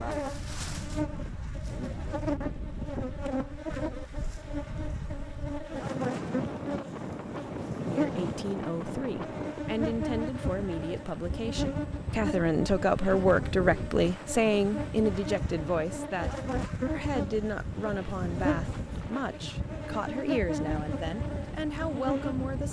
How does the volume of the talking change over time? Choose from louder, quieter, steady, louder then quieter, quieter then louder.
louder then quieter.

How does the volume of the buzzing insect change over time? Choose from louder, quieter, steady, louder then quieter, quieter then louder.
steady.